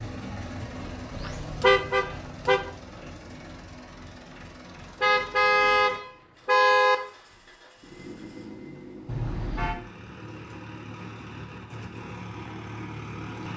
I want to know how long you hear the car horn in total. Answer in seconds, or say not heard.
4 s.